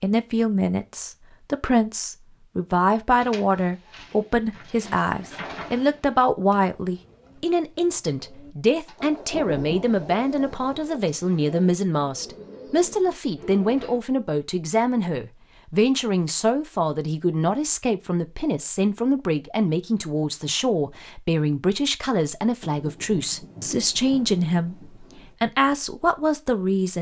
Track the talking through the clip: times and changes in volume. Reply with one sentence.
The talking can be heard from 0.0 to 26.9 s, at a steady volume.